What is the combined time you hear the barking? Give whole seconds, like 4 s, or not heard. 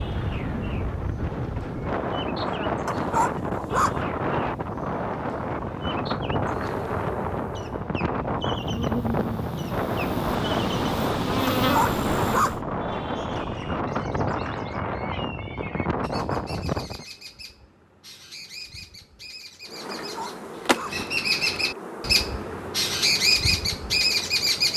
3 s.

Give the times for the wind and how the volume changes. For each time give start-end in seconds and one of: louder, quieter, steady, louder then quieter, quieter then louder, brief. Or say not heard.
0.0-17.1 steady.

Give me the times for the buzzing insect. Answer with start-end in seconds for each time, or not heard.
6.4-12.6, 19.6-24.7.